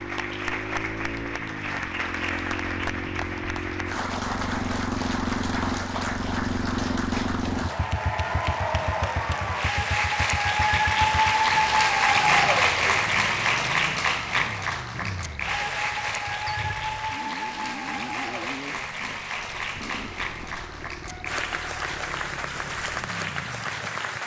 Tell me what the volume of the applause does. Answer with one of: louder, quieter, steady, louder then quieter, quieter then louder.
louder then quieter.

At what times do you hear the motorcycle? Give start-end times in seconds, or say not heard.
0.0-24.2.